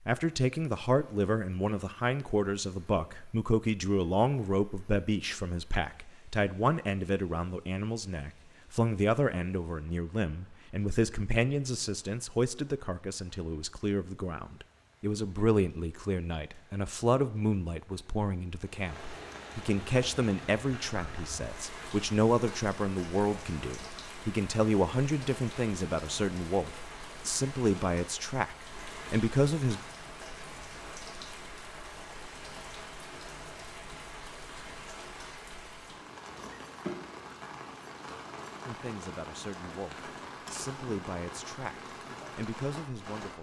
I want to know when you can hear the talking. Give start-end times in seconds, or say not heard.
0.1-29.8, 38.6-43.3.